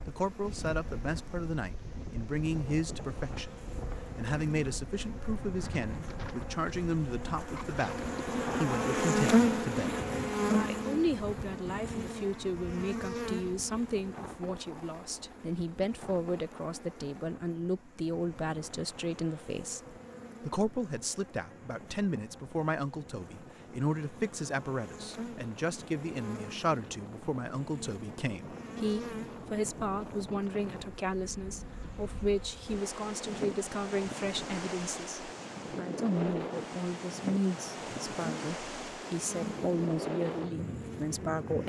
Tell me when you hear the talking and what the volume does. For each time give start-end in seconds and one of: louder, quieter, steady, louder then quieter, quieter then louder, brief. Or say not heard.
0.1-41.6 steady.